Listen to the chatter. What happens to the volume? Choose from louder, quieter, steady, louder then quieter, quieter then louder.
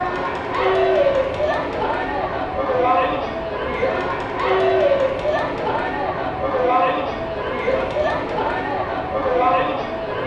steady.